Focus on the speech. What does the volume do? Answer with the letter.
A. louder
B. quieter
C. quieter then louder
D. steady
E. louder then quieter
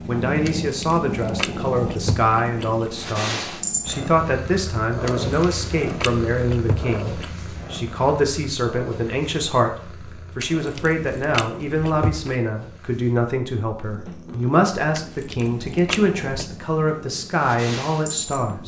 D.